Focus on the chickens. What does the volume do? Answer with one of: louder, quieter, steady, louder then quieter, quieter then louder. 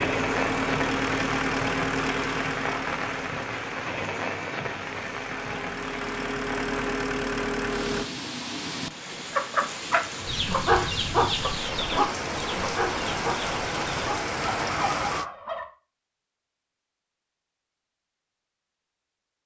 quieter.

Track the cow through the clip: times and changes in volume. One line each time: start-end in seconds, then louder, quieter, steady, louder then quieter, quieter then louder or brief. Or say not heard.
not heard.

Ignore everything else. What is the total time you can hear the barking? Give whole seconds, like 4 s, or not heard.
not heard.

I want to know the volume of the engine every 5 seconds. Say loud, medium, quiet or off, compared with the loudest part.
loud, loud, off, off.